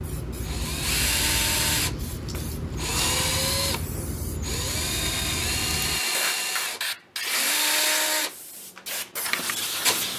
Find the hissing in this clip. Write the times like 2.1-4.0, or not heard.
0.0-10.1.